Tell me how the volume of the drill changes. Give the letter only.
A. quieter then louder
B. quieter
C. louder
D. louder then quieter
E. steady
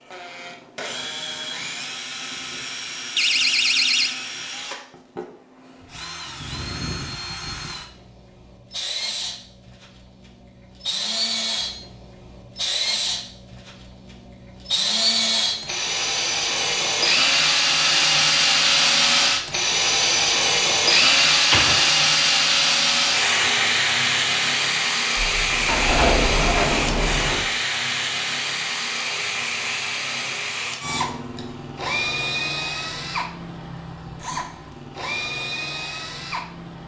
D.